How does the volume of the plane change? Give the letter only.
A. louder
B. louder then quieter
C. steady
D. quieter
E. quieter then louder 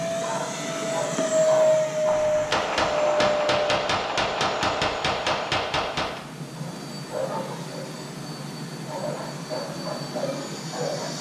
E.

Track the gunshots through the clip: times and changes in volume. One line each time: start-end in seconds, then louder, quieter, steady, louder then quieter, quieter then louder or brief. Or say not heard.
2.0-6.2 steady.